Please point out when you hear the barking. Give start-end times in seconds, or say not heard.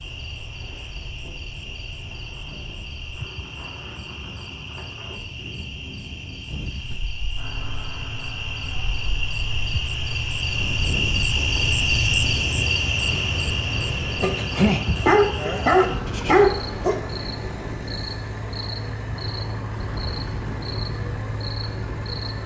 14.2-16.9.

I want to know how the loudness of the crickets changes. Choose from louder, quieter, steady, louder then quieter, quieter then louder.
louder then quieter.